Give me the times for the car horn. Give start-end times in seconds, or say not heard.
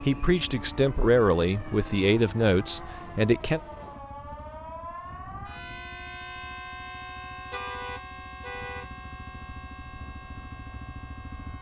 7.5-8.9.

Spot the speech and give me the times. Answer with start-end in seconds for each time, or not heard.
0.0-3.6.